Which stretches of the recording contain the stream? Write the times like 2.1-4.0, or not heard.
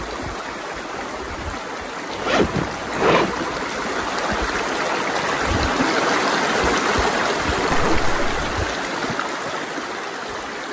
0.0-10.6.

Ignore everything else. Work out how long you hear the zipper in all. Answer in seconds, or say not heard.
2 s.